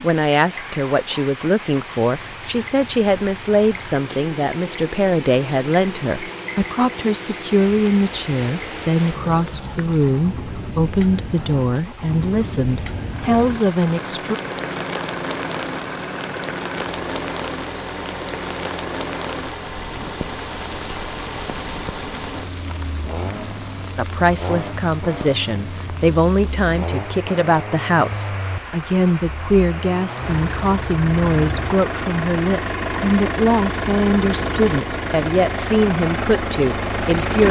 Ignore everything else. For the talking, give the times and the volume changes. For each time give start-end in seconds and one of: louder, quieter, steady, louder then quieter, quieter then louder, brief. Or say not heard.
0.0-14.3 steady
23.9-37.4 steady.